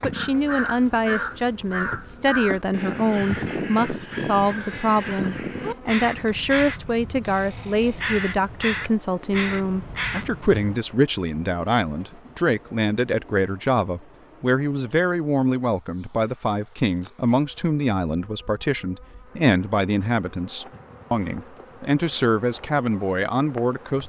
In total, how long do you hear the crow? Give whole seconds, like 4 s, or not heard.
11 s.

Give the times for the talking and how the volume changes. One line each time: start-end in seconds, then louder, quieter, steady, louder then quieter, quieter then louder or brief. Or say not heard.
0.0-24.0 steady.